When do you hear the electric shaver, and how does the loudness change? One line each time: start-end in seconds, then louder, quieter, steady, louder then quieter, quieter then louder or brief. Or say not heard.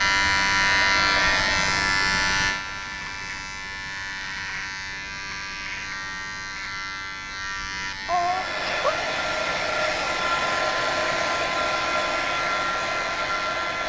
0.0-13.8 quieter.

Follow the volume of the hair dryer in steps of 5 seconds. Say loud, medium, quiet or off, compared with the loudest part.
medium, loud, loud.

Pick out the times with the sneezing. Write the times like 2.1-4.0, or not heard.
8.1-8.9.